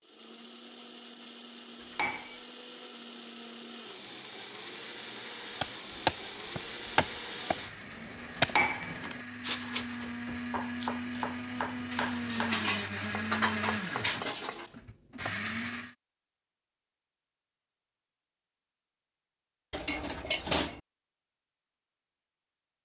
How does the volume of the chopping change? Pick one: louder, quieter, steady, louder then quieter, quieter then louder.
quieter.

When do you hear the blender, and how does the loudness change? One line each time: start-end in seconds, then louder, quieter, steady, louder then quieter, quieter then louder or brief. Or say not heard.
0.0-15.9 louder.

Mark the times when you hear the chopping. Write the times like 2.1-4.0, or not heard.
5.6-14.7.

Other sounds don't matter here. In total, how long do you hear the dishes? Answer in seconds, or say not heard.
5 s.